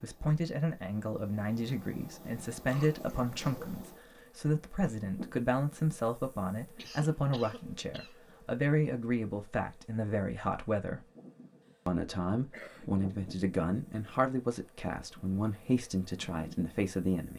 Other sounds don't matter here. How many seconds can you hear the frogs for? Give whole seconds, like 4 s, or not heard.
not heard.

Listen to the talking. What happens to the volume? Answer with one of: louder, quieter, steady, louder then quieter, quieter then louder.
steady.